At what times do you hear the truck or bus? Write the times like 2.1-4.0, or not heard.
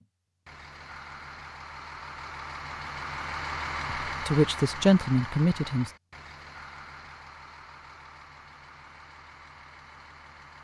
0.0-10.5.